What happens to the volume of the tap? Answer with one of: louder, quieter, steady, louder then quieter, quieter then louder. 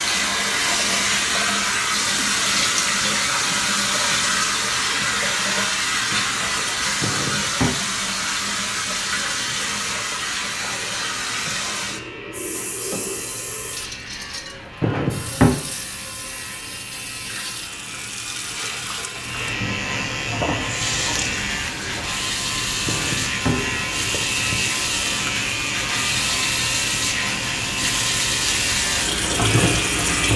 quieter then louder.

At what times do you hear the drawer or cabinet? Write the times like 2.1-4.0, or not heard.
7.0-7.8, 14.8-15.6, 22.9-24.6.